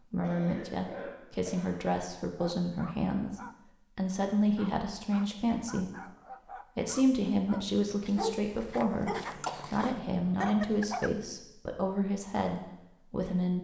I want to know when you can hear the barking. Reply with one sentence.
You can hear the barking from 2.4 to 11.1 s.